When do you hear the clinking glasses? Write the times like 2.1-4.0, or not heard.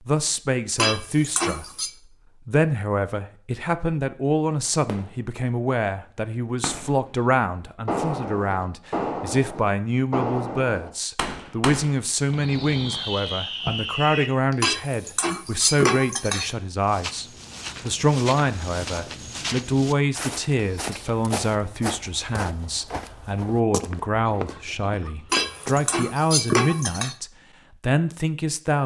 0.8-1.9, 14.6-16.6, 25.3-27.1.